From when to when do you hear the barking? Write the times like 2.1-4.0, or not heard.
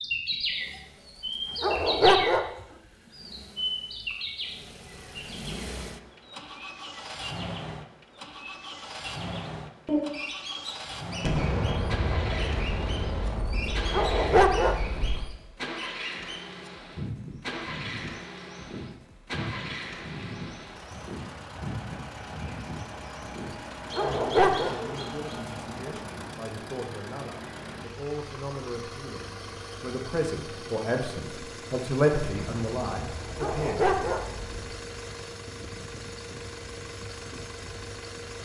1.6-2.5, 13.9-14.8, 23.9-24.8, 33.4-34.2.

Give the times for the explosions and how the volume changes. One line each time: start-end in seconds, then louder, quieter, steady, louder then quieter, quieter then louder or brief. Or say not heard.
11.2-15.2 quieter
32.2-34.8 brief.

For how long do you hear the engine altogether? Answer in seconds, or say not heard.
38 s.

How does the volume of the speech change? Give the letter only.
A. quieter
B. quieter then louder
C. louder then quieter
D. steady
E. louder
E.